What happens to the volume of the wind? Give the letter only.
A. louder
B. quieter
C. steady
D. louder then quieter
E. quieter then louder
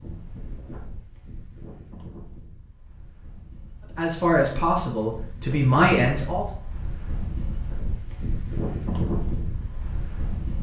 E.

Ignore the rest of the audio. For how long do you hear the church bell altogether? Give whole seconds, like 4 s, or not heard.
not heard.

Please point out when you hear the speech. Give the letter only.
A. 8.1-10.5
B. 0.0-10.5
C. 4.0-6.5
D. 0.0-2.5
C.